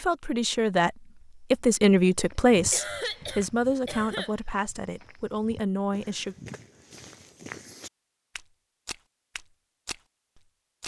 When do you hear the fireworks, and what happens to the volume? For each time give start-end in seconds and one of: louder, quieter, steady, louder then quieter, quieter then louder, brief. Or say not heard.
not heard.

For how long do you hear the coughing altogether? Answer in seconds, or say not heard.
2 s.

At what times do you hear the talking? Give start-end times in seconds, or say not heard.
0.0-6.3.